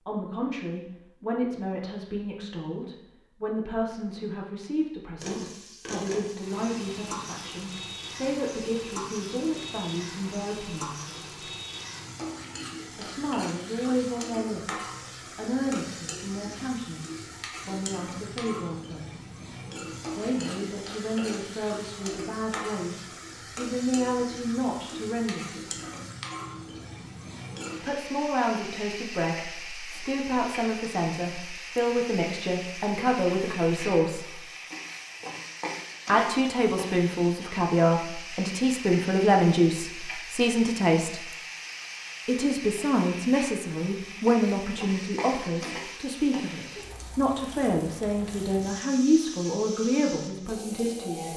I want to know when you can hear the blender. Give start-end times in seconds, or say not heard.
not heard.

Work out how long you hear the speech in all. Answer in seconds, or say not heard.
44 s.